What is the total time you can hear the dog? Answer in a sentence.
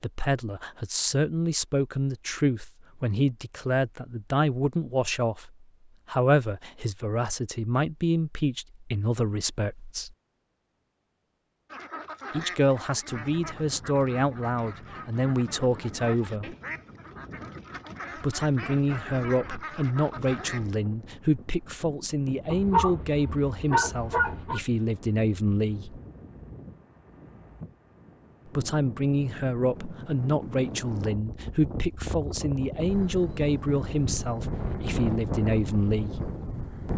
The dog can be heard for 2 seconds in total.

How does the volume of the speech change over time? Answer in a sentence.
The volume of the speech stays about the same.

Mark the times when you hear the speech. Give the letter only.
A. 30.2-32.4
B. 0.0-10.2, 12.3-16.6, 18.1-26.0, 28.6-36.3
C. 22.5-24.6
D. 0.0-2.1
B.